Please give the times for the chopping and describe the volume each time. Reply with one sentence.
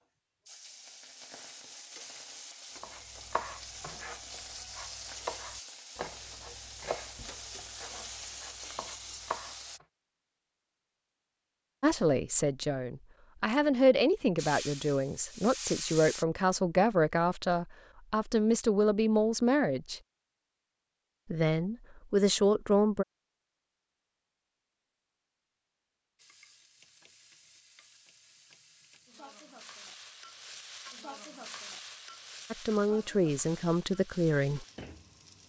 You can hear the chopping from 2.8 to 9.8 s, getting quieter then louder.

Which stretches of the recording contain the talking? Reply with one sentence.
The talking can be heard from 11.8 to 20.0 s, from 21.3 to 23.1 s and from 32.5 to 34.6 s.